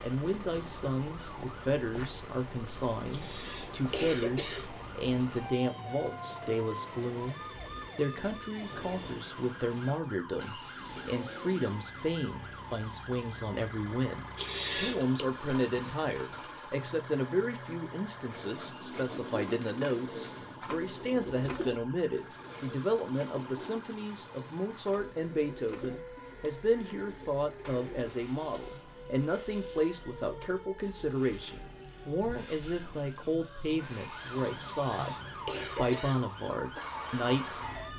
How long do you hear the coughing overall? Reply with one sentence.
You can hear the coughing for 4 seconds altogether.